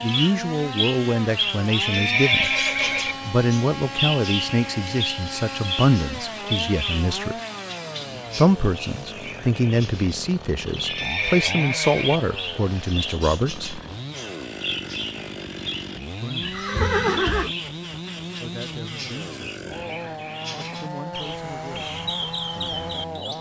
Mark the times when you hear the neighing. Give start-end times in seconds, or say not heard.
1.8-3.1, 10.8-12.2, 16.4-17.6.